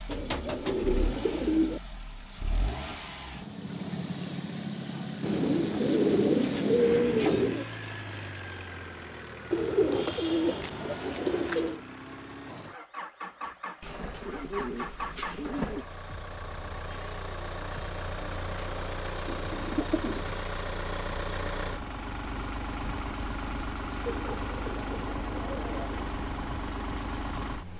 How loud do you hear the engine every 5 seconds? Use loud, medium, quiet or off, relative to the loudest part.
loud, loud, medium, loud, loud, loud.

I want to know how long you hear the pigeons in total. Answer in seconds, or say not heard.
12 s.